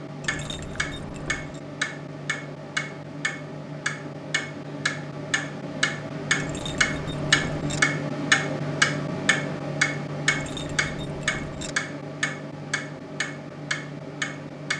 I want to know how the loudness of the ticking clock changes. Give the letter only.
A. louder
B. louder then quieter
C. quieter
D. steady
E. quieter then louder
B.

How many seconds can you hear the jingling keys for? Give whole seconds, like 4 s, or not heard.
4 s.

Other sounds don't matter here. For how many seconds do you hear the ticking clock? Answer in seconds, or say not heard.
15 s.